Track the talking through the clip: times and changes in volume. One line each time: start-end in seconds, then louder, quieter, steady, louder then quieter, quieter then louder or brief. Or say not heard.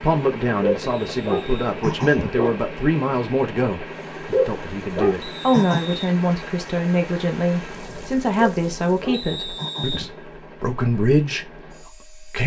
0.0-12.4 steady.